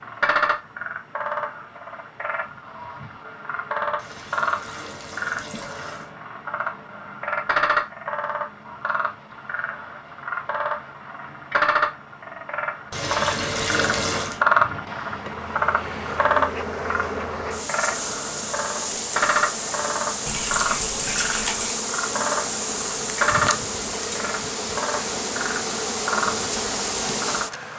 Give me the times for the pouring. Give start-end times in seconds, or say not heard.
4.0-6.1, 12.9-14.4, 20.2-21.8.